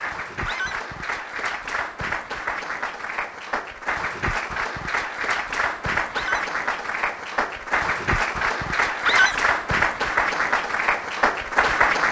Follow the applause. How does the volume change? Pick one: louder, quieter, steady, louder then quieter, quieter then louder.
louder.